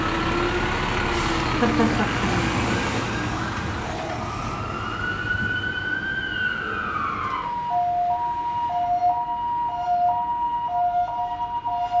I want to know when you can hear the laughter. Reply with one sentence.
The laughter can be heard from 1.4 to 2.5 s.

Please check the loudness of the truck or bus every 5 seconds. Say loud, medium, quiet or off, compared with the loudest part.
loud, quiet, quiet.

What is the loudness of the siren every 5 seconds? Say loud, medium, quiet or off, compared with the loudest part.
medium, loud, loud.